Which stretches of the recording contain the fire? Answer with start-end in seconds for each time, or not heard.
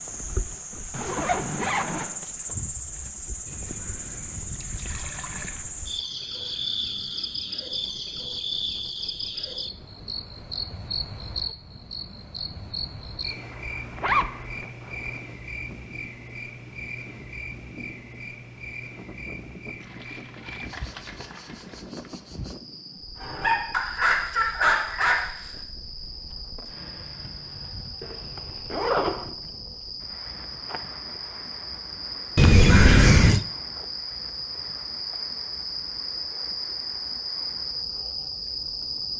not heard.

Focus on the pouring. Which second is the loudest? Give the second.
33 s.